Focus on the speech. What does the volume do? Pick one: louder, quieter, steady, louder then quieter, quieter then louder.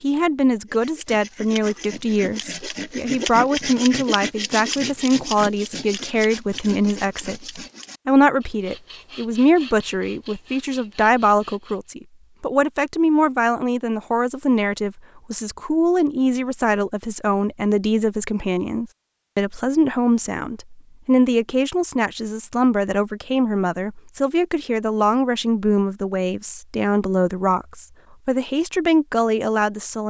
steady.